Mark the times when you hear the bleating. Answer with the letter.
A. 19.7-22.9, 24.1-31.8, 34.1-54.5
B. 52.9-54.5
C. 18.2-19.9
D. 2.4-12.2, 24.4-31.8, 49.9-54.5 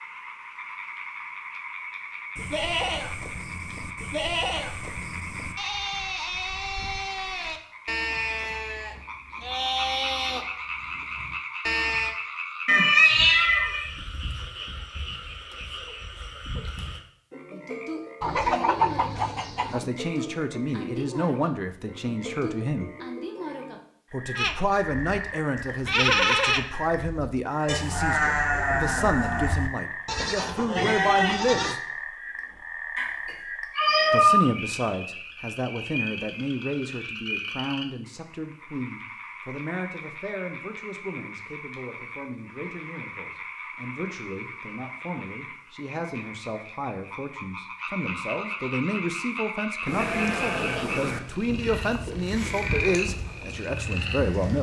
D.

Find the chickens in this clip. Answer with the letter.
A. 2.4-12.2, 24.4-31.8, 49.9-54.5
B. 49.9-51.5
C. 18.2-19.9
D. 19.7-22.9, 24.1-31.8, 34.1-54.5
C.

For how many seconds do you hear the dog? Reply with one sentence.
You can't hear the dog here.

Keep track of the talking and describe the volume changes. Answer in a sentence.
The volume of the talking goes down, then up.